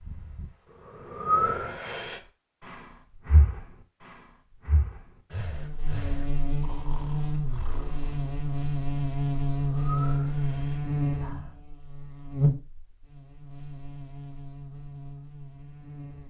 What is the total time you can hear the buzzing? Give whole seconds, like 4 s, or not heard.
11 s.